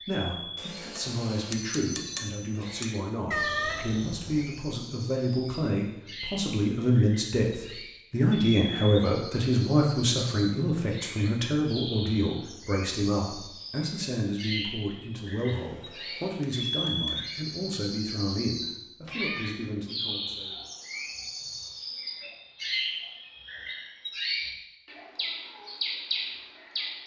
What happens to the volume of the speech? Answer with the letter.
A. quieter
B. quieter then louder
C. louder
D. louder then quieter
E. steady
D.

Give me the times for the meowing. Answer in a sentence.
The meowing can be heard from 3.3 to 4.5 s and from 19.1 to 19.7 s.